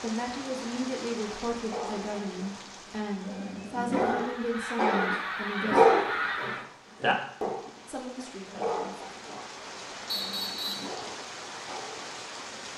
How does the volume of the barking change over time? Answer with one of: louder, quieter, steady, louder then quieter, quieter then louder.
louder then quieter.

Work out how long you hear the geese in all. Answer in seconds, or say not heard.
3 s.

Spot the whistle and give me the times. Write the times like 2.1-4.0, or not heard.
10.1-10.9.